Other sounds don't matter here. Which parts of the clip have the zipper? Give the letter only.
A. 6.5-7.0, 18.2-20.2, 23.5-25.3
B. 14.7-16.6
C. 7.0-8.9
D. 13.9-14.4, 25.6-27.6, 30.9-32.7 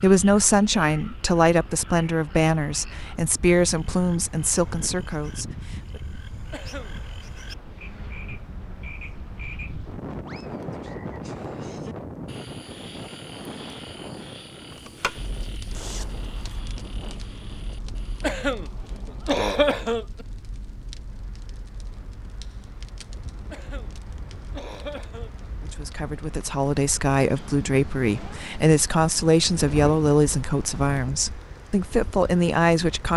B.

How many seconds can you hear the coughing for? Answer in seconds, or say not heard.
4 s.